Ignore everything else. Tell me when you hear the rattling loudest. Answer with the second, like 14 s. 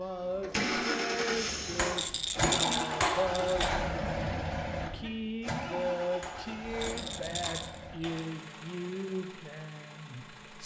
3 s.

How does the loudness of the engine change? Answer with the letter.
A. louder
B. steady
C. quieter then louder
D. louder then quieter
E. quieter
E.